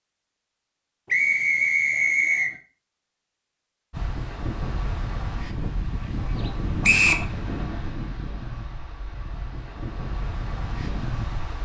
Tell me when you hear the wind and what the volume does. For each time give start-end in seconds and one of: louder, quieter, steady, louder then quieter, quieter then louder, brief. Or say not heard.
3.9-11.6 quieter then louder.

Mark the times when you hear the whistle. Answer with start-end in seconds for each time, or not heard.
1.1-2.5, 6.8-7.2.